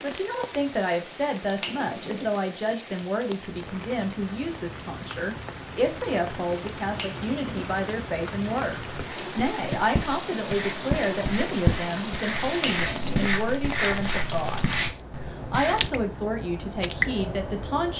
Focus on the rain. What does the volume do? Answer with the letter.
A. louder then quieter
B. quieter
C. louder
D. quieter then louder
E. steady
C.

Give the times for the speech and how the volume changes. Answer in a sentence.
You can hear the speech from 0.0 to 14.6 s, at a steady volume; and briefly from 15.3 to 17.9 s.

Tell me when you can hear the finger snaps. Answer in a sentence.
You can hear the finger snaps from 1.6 to 2.2 s, from 7.0 to 7.6 s and from 12.6 to 13.2 s.